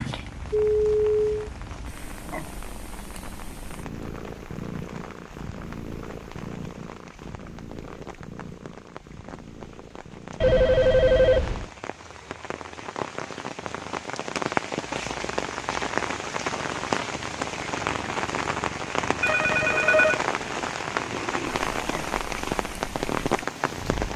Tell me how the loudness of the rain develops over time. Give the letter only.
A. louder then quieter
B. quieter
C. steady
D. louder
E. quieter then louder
D.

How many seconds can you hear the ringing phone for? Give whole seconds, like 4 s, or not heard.
3 s.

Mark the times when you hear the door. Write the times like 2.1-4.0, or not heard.
not heard.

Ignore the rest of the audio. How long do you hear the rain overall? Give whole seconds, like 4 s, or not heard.
24 s.